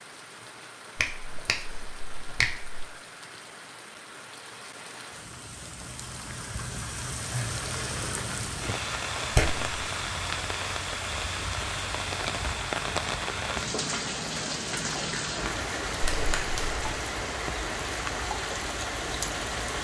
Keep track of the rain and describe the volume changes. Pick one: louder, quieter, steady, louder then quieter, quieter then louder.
louder.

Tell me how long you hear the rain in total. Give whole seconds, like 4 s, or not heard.
20 s.